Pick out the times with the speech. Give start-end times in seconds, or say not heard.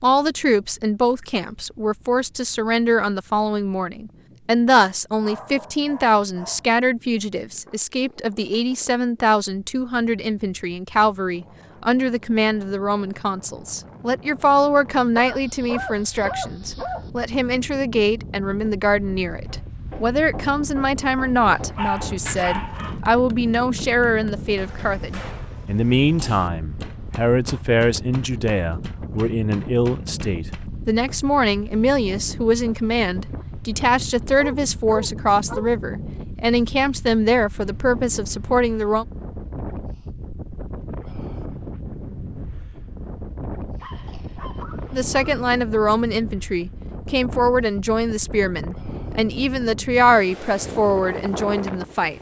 0.0-39.0, 44.9-52.1.